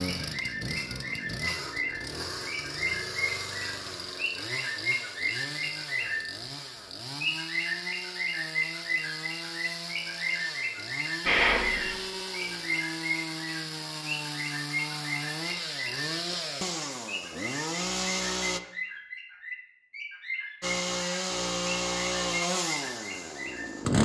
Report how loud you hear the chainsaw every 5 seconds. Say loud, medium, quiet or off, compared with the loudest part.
medium, medium, medium, loud, loud.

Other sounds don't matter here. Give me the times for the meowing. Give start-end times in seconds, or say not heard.
11.2-12.0.